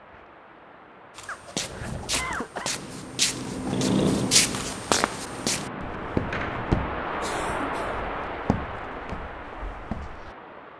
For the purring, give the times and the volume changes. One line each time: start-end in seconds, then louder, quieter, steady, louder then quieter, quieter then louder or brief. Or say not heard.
2.6-7.0 louder then quieter.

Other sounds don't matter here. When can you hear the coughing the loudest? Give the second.
2 s.